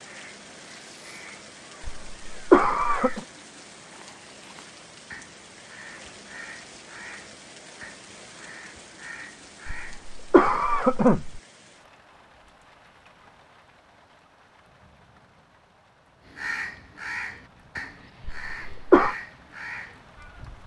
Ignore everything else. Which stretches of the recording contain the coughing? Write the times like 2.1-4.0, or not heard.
1.9-3.2, 9.7-11.4, 18.2-19.1.